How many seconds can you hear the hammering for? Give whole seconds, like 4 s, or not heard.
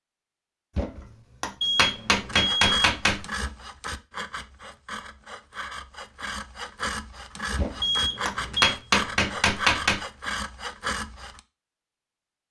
5 s.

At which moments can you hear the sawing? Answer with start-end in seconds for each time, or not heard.
2.2-11.4.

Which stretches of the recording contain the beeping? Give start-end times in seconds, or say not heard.
1.6-2.6, 7.8-8.8.